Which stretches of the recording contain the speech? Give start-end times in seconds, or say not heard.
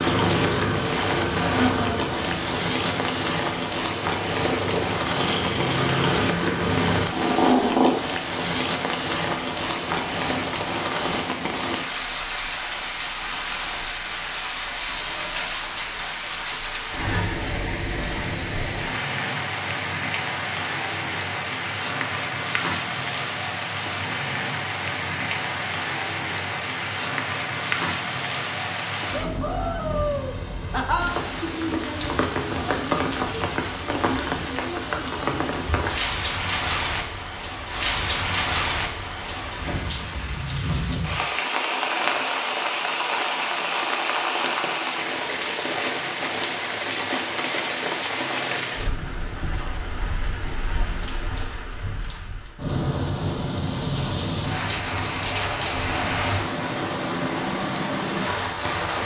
not heard.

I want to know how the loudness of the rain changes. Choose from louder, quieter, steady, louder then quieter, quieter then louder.
steady.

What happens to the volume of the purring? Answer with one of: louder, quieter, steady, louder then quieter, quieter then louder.
quieter then louder.